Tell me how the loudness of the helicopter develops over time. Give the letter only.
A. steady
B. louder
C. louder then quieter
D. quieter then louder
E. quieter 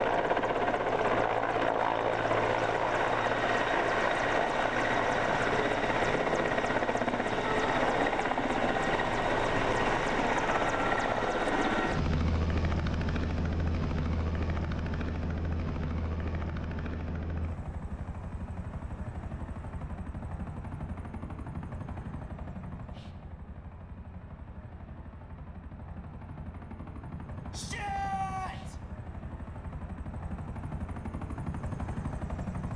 E.